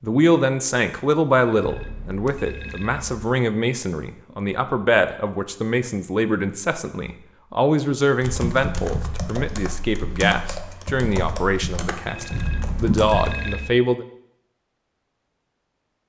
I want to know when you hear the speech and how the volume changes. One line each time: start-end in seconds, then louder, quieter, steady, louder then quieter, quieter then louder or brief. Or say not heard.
0.0-14.1 steady.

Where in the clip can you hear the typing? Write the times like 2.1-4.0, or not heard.
8.2-13.3.